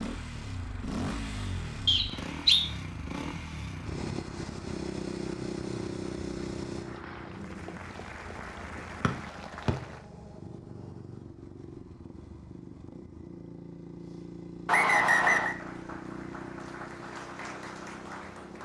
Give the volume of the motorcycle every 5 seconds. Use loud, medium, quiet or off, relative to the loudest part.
loud, loud, medium, medium.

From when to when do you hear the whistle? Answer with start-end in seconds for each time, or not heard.
1.9-2.6, 9.0-9.8, 14.7-15.6.